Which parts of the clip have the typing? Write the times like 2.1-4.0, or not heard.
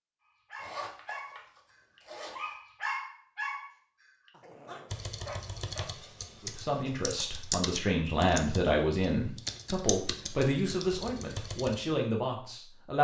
4.9-11.8.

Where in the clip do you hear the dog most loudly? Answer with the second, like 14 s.
3 s.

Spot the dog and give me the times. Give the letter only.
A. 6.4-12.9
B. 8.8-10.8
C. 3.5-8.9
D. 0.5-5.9
D.